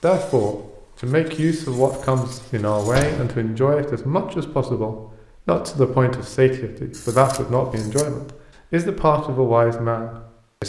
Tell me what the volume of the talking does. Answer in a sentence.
The loudness of the talking stays about the same.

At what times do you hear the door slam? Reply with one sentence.
The door slam can be heard from 2.9 to 3.5 s.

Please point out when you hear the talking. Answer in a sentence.
The talking can be heard from 0.0 to 10.6 s.